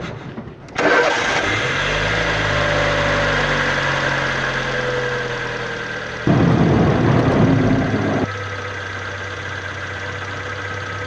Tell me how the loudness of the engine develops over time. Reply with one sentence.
The loudness of the engine goes down.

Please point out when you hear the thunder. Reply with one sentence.
You can hear the thunder from 6.2 to 8.2 s.